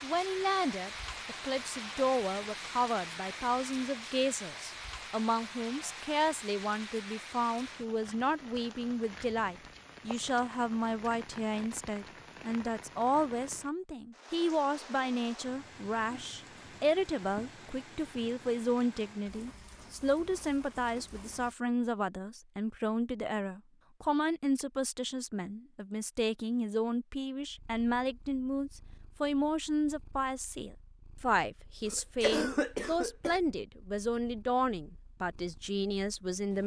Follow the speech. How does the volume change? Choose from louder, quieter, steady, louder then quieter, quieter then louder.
steady.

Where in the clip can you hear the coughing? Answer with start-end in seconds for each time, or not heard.
31.9-33.4.